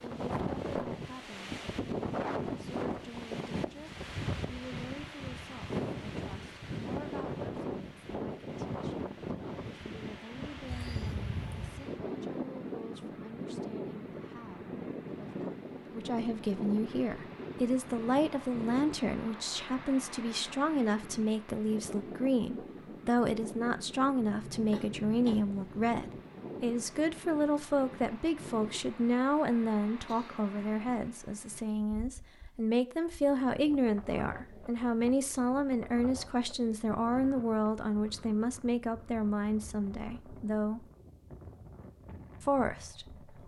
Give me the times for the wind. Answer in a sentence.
You can hear the wind from 0.0 to 43.4 s.